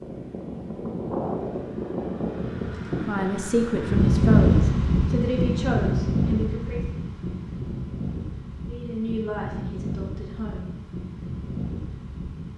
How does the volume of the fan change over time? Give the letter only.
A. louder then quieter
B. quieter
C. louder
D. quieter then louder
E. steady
A.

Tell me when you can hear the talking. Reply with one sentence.
The talking can be heard from 3.0 to 7.0 s and from 8.7 to 10.8 s.